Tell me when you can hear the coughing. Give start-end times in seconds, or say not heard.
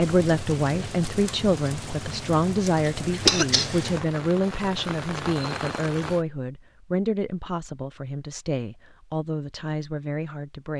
3.2-4.1.